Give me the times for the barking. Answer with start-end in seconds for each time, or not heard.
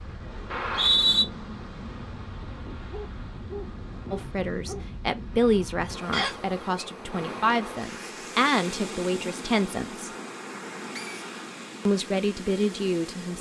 2.9-4.8.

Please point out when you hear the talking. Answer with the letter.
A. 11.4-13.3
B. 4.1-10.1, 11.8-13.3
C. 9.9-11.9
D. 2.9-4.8
B.